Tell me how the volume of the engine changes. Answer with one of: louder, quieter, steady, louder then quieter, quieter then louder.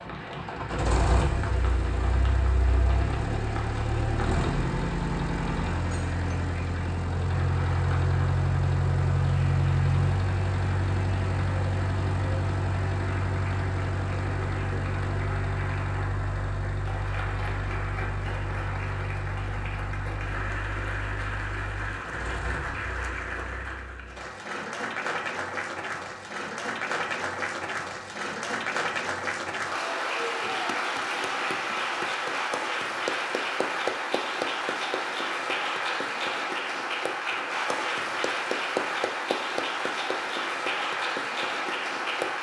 quieter.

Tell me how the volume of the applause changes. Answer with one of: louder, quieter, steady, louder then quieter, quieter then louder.
louder.